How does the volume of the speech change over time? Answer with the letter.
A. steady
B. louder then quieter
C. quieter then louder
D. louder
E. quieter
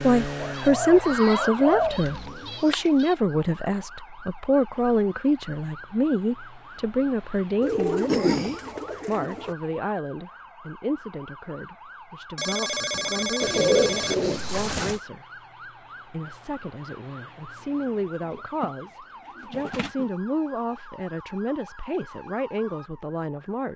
E.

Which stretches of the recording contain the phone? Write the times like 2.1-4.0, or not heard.
12.3-14.2.